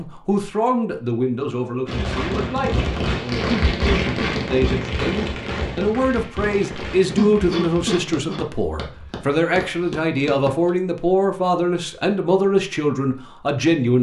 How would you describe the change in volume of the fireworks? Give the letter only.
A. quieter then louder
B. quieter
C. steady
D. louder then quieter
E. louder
B.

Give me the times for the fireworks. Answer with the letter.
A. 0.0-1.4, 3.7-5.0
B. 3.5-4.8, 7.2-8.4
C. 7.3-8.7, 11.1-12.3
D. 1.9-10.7
D.